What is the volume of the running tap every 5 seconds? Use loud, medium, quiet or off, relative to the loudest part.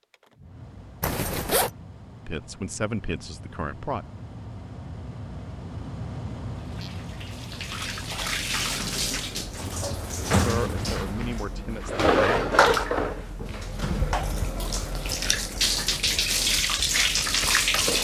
off, medium, loud, loud.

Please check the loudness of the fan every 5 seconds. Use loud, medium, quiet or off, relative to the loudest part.
medium, loud, off, off.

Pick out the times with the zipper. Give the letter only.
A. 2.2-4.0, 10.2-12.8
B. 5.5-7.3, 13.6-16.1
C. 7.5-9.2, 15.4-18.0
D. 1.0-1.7
D.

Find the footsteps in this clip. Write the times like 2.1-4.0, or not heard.
not heard.